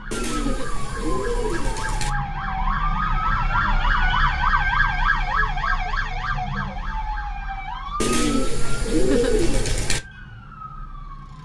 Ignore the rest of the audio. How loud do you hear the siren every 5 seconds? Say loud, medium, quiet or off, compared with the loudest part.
loud, loud, quiet.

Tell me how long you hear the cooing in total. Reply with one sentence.
You can hear the cooing for 4 seconds altogether.